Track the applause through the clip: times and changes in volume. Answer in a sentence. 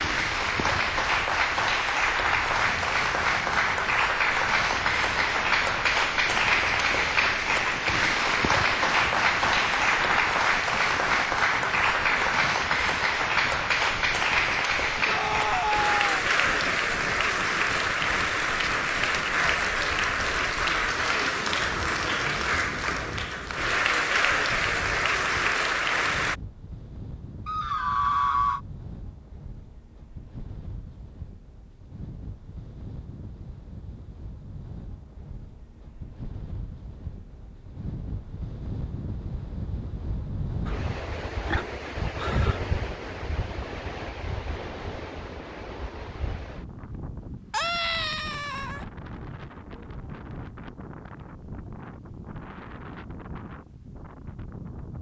The applause can be heard from 0.0 to 26.4 s, at a steady volume.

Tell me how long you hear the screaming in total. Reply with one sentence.
The screaming can be heard for 4 seconds in total.